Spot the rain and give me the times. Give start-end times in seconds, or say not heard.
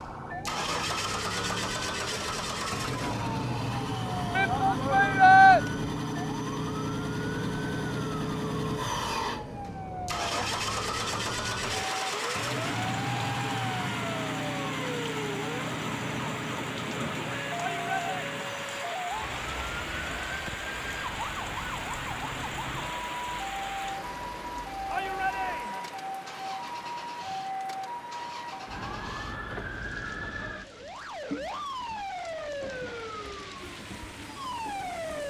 11.6-35.2.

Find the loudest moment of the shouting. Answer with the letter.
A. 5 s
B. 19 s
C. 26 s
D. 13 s
A.